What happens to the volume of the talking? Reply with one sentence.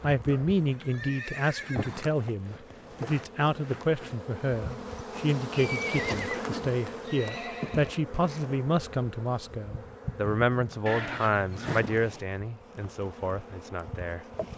The volume of the talking stays about the same.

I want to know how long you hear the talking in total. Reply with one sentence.
The talking can be heard for 14 seconds in total.